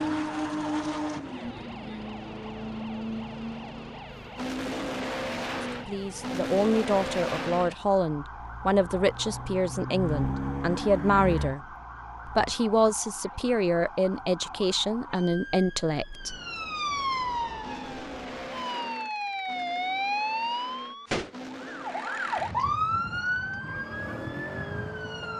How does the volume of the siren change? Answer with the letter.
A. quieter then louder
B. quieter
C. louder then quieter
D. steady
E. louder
E.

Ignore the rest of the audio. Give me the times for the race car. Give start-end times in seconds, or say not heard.
0.0-12.6, 17.5-25.3.